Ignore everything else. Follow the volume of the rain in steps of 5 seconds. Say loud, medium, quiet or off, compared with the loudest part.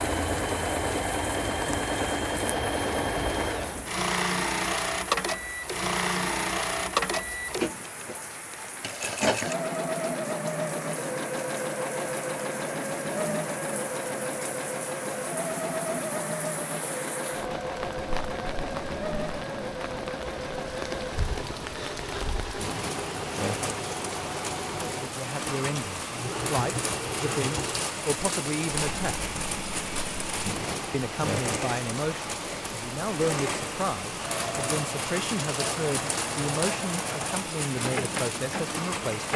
medium, medium, medium, medium, loud, loud, loud, loud.